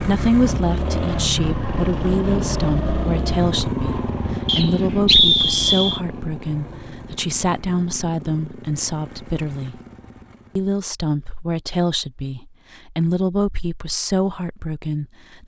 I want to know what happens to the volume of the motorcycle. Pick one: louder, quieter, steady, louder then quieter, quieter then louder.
quieter.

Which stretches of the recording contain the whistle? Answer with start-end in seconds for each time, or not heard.
4.5-6.0.